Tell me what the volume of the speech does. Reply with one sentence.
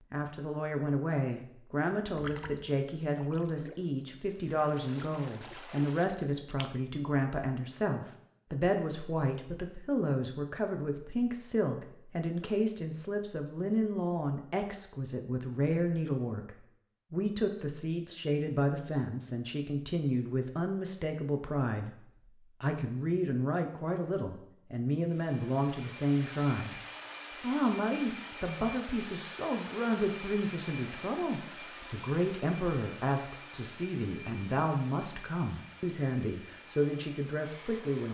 The volume of the speech stays about the same.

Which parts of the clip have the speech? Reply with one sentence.
The speech can be heard from 0.1 to 21.9 s, from 22.6 to 26.8 s and from 27.4 to 38.1 s.